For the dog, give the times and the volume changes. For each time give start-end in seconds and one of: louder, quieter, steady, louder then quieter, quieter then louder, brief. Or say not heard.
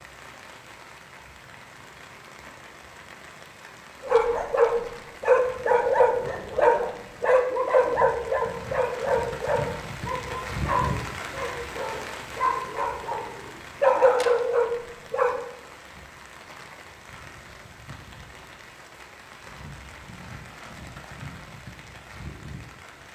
4.0-15.4 quieter then louder.